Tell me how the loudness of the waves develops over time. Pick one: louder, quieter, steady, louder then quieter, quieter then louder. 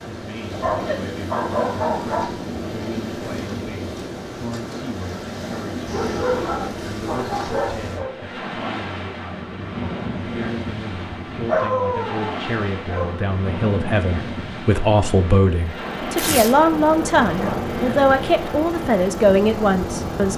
steady.